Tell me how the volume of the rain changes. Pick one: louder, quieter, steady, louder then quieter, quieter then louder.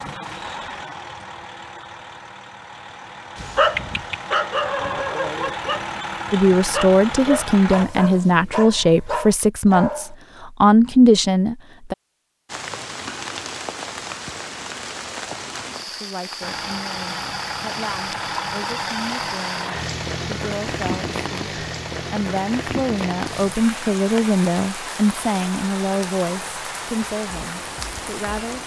steady.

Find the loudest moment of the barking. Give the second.
4 s.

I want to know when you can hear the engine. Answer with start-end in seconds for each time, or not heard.
0.0-7.8, 16.4-28.6.